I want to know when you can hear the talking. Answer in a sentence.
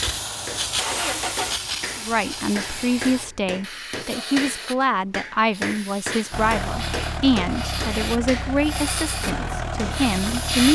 You can hear the talking from 2.0 to 10.7 s.